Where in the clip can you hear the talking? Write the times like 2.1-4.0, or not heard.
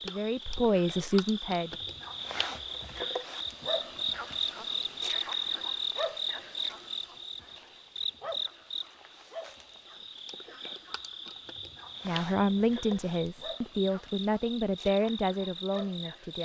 0.0-1.9, 12.1-16.3.